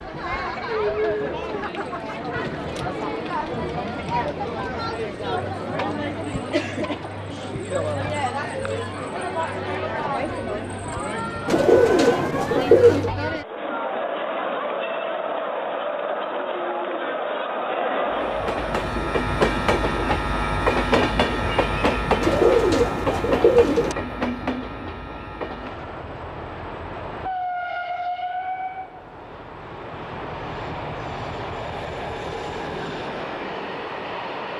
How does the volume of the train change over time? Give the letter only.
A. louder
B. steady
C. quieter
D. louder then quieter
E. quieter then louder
C.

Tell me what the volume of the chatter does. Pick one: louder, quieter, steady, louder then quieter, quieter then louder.
steady.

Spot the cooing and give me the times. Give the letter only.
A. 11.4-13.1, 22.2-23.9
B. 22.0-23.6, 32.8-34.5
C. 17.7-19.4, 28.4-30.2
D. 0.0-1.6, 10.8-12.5
A.